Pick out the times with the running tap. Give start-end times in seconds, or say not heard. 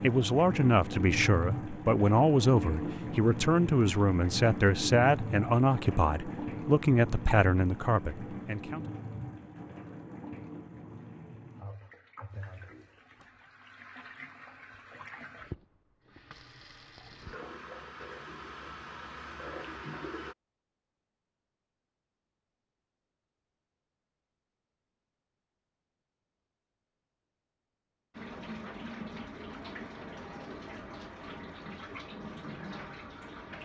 0.0-20.4, 28.1-33.6.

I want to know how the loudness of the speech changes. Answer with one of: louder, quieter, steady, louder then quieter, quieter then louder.
steady.